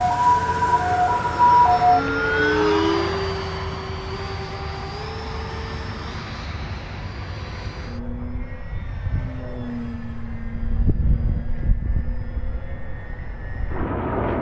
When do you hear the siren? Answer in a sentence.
You can hear the siren from 0.0 to 3.1 s.